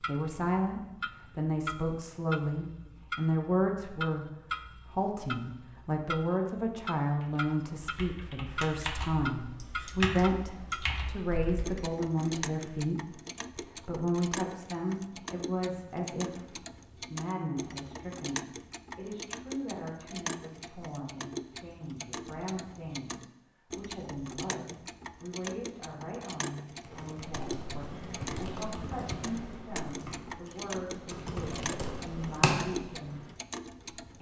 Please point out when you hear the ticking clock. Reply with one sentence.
The ticking clock can be heard from 0.0 to 34.1 s.